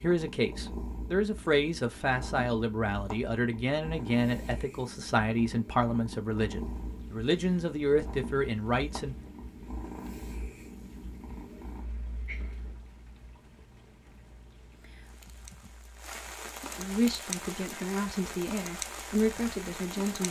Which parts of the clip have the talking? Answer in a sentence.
The talking can be heard from 0.0 to 9.2 s and from 16.8 to 20.2 s.